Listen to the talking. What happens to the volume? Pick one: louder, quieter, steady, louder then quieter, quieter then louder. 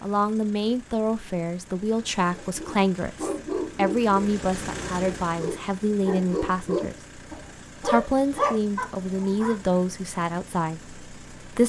steady.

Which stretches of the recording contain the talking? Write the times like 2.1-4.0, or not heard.
0.0-7.0, 7.8-11.6.